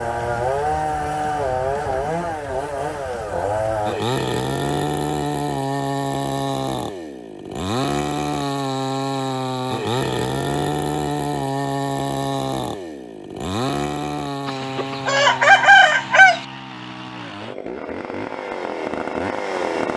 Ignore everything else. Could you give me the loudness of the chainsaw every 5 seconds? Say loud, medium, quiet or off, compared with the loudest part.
loud, loud, loud, medium.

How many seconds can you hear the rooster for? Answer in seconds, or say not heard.
2 s.